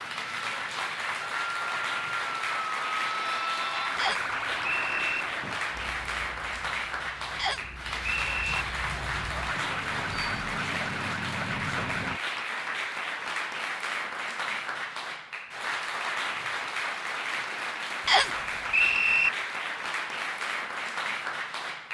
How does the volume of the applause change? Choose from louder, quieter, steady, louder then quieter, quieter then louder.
steady.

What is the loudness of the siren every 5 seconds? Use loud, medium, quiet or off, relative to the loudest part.
loud, medium, loud, off, off.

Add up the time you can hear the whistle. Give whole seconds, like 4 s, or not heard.
4 s.